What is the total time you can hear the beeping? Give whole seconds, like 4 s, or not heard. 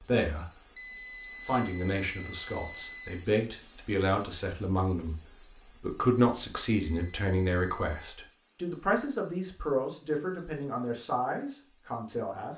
4 s.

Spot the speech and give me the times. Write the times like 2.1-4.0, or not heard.
0.0-0.6, 1.2-12.5.